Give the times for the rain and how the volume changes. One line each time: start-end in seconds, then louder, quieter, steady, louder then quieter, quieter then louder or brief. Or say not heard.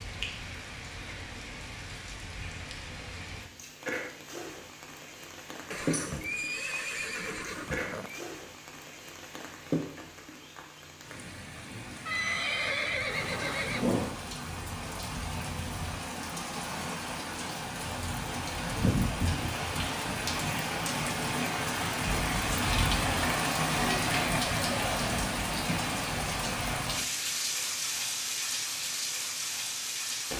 0.0-30.3 louder.